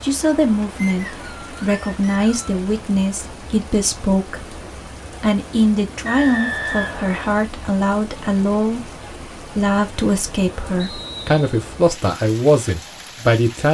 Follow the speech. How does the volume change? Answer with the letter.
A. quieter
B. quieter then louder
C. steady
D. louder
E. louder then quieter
C.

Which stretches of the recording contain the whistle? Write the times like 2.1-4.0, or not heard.
0.8-2.6, 6.0-7.4, 10.8-11.4.